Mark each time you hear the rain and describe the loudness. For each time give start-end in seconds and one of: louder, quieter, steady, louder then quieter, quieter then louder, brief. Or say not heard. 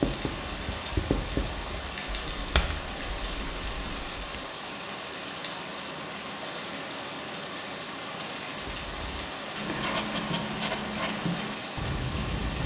0.0-12.6 steady.